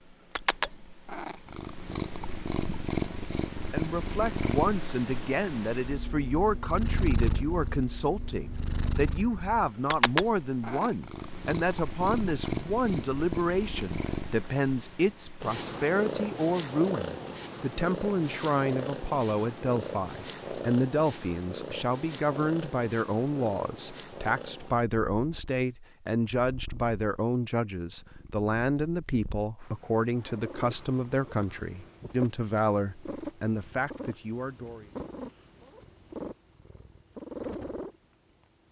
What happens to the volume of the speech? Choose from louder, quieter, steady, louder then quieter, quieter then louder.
steady.